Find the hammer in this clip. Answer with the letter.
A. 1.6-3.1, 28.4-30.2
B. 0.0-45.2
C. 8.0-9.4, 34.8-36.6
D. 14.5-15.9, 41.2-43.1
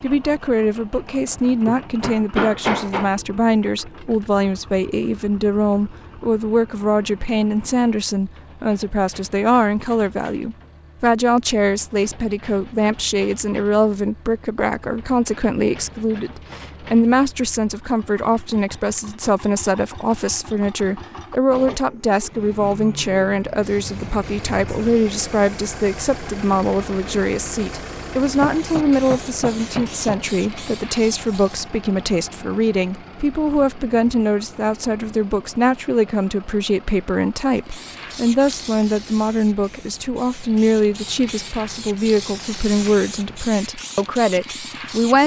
A.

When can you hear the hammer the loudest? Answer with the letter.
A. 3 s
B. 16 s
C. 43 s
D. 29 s
A.